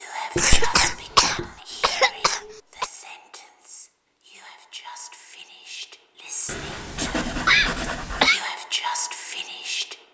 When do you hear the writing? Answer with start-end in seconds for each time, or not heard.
0.3-1.6, 6.5-8.3.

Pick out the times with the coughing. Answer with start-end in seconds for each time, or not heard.
0.3-2.9, 7.5-8.4.